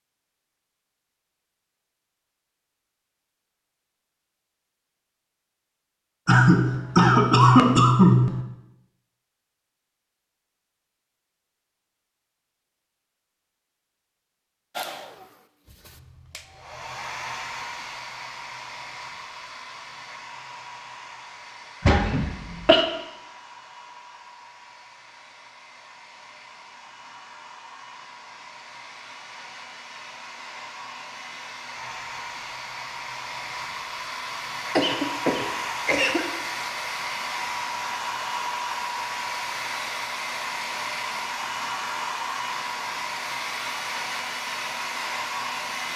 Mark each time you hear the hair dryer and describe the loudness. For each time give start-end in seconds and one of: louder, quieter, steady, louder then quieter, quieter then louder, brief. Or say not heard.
14.7-45.9 quieter then louder.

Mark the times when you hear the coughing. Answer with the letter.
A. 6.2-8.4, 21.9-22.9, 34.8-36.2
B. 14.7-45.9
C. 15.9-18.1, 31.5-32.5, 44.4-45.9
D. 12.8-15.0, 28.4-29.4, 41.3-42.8
A.